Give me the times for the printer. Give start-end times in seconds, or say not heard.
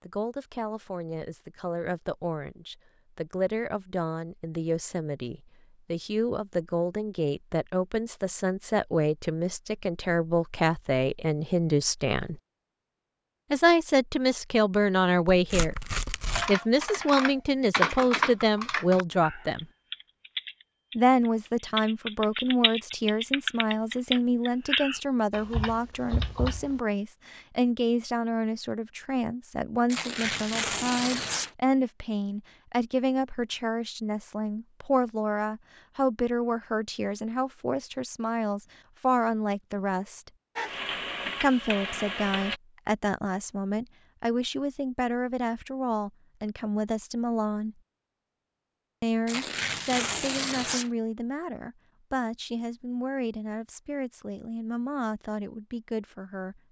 40.5-42.6.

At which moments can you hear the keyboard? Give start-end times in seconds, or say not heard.
16.2-26.8.